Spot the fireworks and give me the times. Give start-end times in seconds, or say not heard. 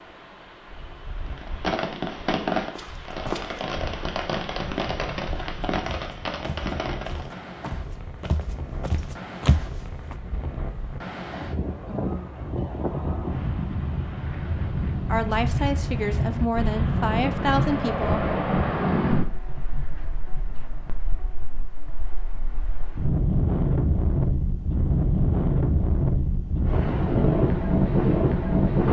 1.3-7.4.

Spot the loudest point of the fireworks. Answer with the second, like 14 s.
2 s.